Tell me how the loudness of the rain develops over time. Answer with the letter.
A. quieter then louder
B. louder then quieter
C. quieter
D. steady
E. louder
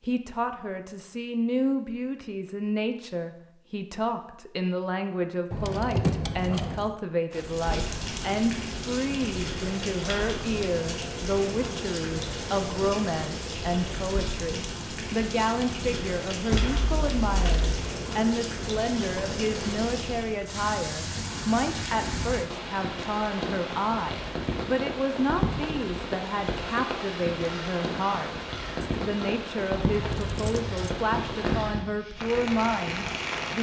D.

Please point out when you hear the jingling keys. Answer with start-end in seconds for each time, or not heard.
5.5-6.9, 16.5-17.9, 30.0-30.9.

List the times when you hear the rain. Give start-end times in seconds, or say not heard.
7.3-33.5.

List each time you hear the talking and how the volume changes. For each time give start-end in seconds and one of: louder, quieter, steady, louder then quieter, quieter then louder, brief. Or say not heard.
0.0-33.5 steady.